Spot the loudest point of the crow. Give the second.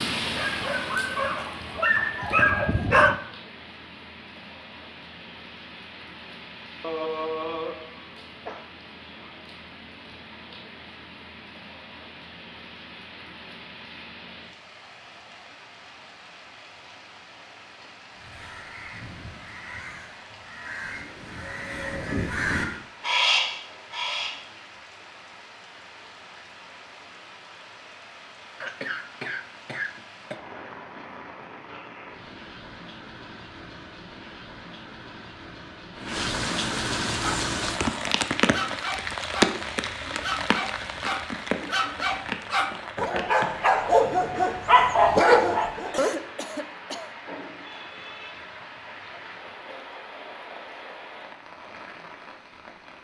23 s.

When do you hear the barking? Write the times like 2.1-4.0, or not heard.
0.2-3.1, 37.1-46.1.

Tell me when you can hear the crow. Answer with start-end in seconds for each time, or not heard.
18.1-24.4.